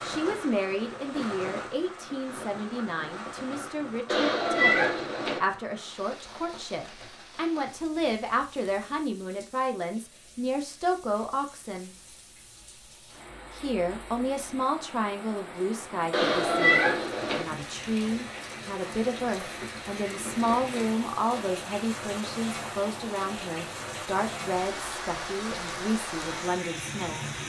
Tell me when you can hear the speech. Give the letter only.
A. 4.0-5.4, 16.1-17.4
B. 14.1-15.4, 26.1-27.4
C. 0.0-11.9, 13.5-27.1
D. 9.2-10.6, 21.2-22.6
C.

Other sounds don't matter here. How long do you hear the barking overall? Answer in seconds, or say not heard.
not heard.